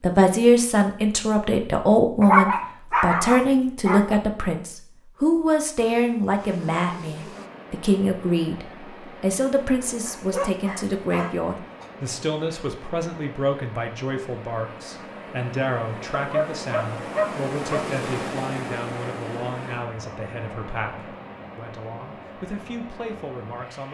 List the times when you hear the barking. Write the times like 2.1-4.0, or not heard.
2.2-4.2, 10.1-11.9, 16.1-17.9.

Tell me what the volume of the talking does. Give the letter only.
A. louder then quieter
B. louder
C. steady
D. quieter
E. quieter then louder
D.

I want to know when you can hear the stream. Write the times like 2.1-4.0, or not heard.
7.3-23.8.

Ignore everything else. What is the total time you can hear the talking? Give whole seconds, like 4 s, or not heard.
24 s.